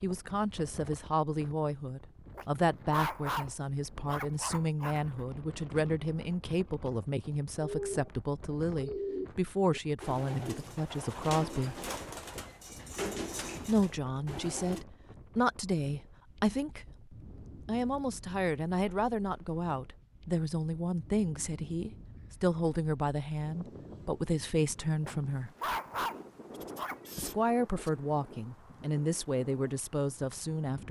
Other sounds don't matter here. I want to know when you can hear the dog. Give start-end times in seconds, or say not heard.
2.4-5.2, 25.0-26.9.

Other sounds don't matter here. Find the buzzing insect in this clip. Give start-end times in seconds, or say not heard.
not heard.